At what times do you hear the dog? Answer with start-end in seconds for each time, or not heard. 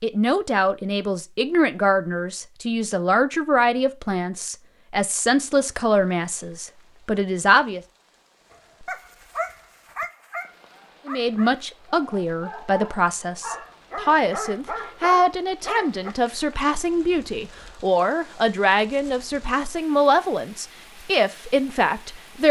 8.5-16.1.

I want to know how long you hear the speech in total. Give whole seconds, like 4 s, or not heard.
19 s.